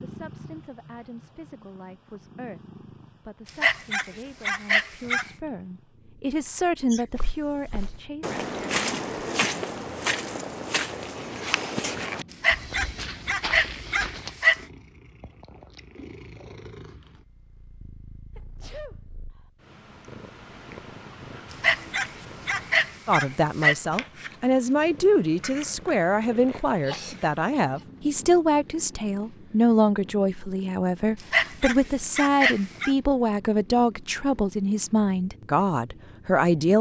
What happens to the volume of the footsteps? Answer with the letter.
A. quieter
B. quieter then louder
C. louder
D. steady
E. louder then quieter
A.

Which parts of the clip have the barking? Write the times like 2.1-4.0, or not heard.
3.5-5.3, 12.3-14.7, 21.5-23.8, 31.2-32.9.